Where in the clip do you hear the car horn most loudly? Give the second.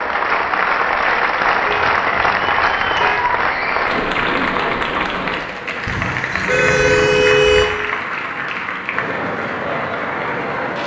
7 s.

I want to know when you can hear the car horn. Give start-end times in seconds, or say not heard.
1.6-3.3, 5.8-7.7.